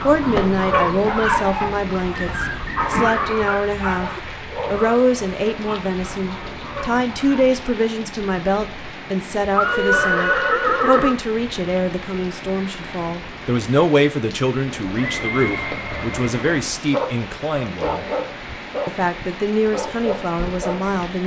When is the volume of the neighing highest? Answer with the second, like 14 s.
10 s.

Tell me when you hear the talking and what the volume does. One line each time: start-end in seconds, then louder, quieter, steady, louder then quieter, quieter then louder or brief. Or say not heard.
0.0-18.1 steady
18.9-21.2 brief.